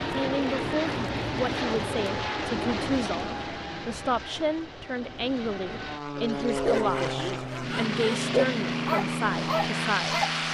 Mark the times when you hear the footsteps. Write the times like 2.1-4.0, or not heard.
not heard.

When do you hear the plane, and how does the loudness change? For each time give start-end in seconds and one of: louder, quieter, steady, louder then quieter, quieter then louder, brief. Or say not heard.
0.0-10.4 quieter then louder.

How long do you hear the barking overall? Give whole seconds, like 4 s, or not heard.
4 s.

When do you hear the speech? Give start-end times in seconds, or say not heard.
0.1-10.2.